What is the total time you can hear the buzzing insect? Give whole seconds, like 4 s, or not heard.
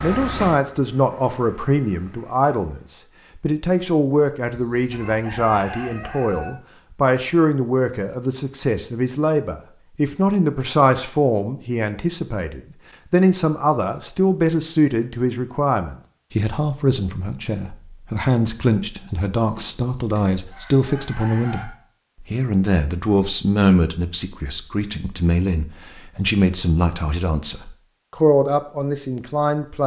not heard.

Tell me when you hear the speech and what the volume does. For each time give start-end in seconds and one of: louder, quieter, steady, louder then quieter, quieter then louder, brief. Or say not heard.
0.0-29.8 steady.